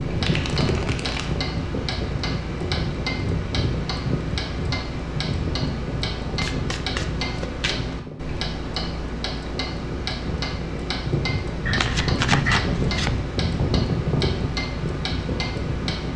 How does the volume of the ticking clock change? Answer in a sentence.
The volume of the ticking clock stays about the same.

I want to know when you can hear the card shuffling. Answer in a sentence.
The card shuffling can be heard from 0.2 to 1.4 s, from 6.4 to 8.0 s and from 11.7 to 13.2 s.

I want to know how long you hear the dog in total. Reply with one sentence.
You can't hear the dog here.